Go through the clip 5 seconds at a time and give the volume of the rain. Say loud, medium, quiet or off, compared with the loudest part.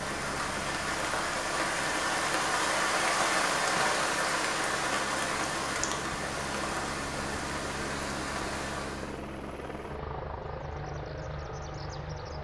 loud, medium, off.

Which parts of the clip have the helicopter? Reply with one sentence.
The helicopter can be heard from 0.0 to 12.3 s.